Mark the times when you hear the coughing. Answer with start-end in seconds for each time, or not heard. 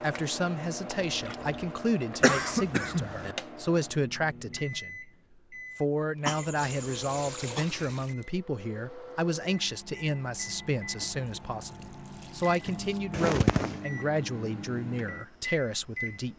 2.2-3.4, 6.2-7.7, 13.1-13.8.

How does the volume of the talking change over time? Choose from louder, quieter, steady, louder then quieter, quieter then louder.
steady.